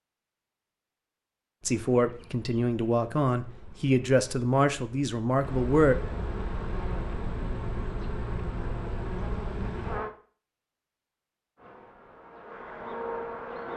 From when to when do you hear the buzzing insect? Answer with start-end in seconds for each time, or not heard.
1.6-10.2, 11.6-13.7.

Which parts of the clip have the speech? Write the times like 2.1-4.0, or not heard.
1.6-6.0.